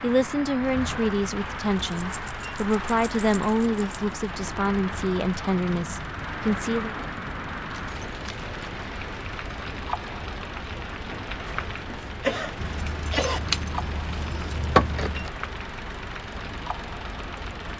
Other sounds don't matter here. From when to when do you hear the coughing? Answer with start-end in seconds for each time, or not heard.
11.4-13.4.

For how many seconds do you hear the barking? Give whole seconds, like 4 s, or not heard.
not heard.